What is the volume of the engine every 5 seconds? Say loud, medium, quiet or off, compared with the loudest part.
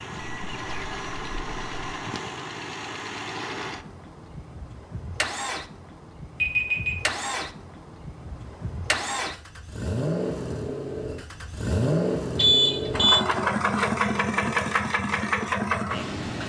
medium, medium, loud, loud.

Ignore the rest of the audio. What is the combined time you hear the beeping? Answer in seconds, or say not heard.
3 s.